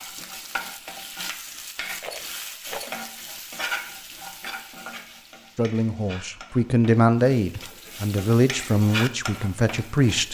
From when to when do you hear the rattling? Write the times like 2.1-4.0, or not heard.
2.0-3.0.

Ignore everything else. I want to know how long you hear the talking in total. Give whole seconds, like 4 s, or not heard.
5 s.